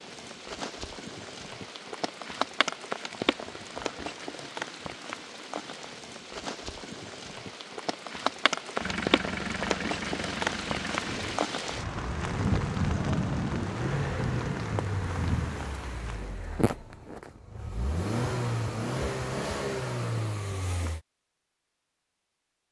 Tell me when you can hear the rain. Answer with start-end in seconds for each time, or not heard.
0.0-16.4.